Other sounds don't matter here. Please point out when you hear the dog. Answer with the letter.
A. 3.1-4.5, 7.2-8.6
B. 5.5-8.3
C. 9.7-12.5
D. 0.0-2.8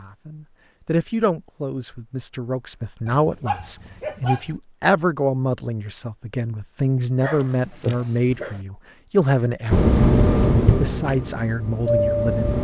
A.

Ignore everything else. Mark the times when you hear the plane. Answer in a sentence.
You can hear the plane from 9.7 to 12.5 s.